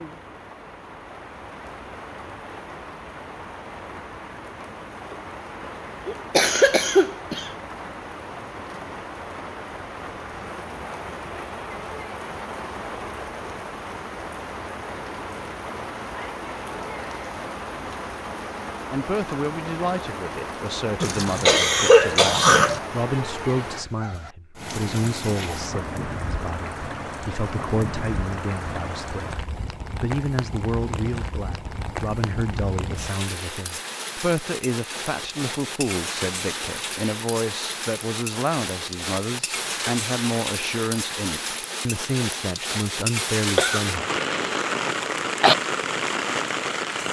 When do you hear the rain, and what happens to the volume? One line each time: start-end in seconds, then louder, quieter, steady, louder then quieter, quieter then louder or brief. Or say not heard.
0.0-47.0 louder.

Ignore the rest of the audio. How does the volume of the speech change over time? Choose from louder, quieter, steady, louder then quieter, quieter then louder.
steady.